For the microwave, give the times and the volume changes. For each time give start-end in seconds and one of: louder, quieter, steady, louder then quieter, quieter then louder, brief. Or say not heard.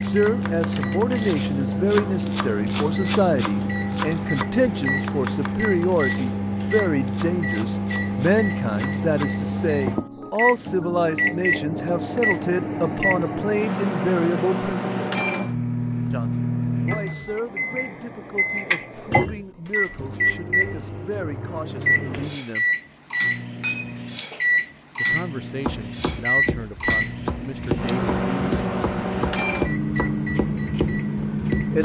0.0-31.8 steady.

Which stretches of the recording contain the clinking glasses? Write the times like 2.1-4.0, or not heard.
23.6-24.6.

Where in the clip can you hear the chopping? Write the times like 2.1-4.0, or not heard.
0.0-9.2, 25.6-31.8.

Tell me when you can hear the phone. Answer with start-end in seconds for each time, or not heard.
not heard.